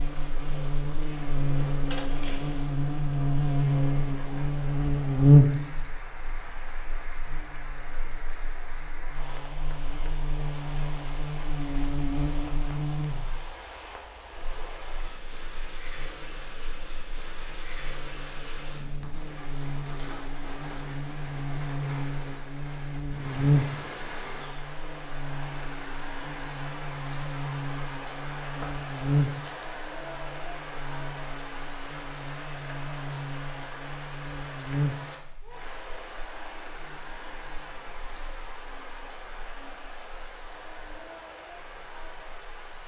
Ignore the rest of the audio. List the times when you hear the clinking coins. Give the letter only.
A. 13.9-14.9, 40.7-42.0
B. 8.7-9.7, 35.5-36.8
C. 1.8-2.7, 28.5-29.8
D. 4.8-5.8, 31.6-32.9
C.